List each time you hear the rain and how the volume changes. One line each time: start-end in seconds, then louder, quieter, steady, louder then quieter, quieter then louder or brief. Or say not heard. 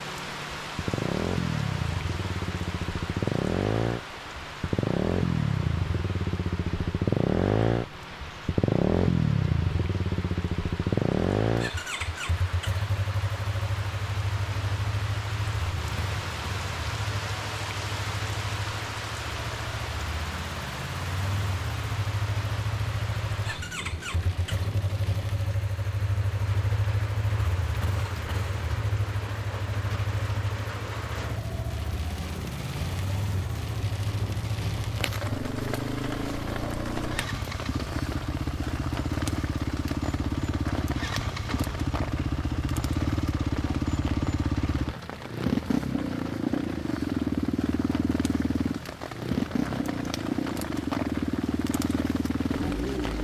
0.0-53.2 steady.